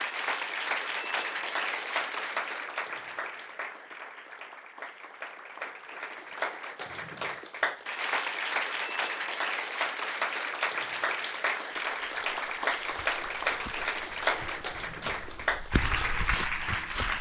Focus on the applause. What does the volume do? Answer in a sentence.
The loudness of the applause goes down, then up.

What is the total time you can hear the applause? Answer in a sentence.
You can hear the applause for 17 seconds altogether.